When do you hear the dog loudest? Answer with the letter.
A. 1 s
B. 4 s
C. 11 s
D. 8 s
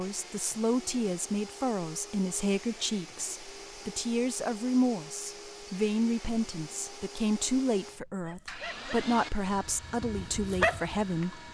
C.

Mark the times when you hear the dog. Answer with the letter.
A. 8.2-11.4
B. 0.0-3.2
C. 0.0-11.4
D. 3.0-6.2
A.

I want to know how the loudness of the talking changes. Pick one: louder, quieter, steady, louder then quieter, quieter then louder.
steady.